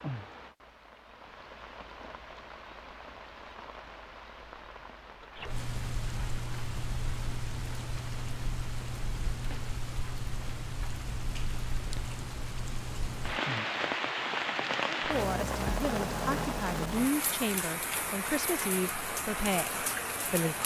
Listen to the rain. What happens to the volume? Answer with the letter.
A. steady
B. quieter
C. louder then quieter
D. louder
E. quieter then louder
D.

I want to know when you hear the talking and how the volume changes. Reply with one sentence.
You can hear the talking from 15.0 to 20.6 s, at a steady volume.